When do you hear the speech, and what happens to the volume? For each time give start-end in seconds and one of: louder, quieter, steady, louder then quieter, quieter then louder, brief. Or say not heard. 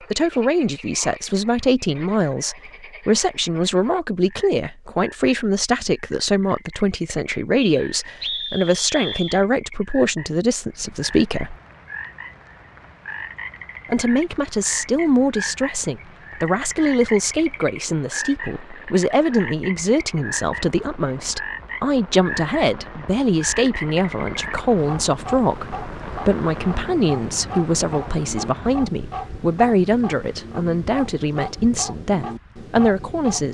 0.1-11.6 steady
13.8-33.4 steady.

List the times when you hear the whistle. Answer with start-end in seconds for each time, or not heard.
7.6-9.4.